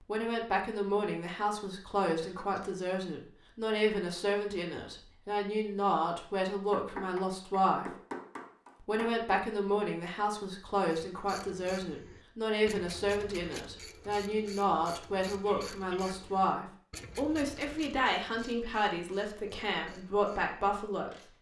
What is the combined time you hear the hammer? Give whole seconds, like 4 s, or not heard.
3 s.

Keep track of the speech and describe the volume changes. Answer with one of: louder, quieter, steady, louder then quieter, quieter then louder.
steady.